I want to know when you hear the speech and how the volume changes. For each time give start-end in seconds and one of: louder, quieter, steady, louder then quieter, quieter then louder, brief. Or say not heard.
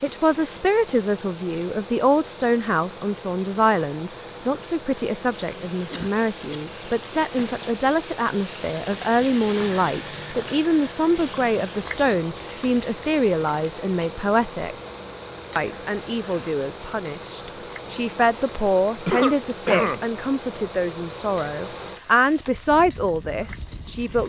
0.0-14.8 steady
15.6-24.2 louder.